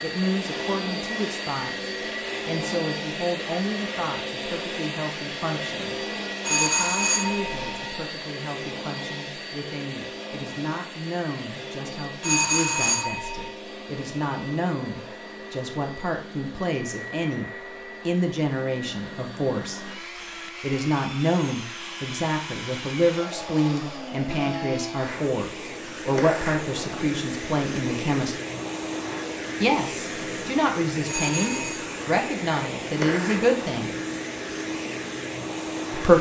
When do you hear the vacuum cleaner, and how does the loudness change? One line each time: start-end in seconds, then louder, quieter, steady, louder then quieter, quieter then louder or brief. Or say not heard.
0.0-36.1 quieter then louder.